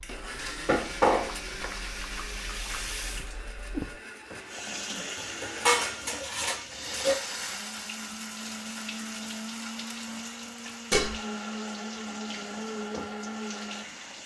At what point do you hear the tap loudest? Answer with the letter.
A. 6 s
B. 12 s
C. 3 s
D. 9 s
C.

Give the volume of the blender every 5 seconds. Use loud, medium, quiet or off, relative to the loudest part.
medium, loud, loud.